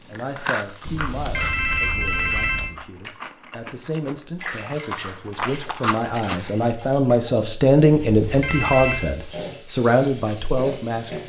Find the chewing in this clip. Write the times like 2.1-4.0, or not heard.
0.0-6.4.